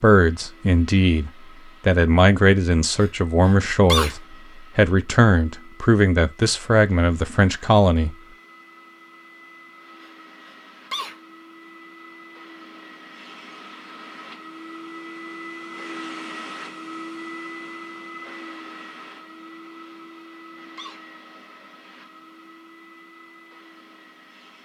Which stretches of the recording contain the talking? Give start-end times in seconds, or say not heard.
0.0-8.2.